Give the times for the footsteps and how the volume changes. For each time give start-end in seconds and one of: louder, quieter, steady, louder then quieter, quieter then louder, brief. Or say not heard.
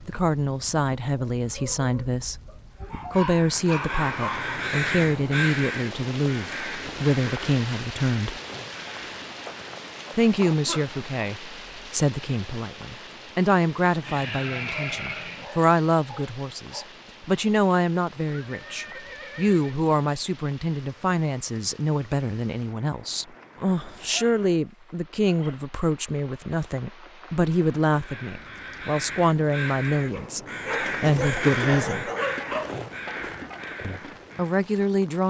not heard.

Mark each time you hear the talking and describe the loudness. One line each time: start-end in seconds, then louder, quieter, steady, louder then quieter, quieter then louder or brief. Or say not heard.
0.0-2.4 brief
3.1-8.4 steady
10.2-32.1 steady
33.8-35.2 brief.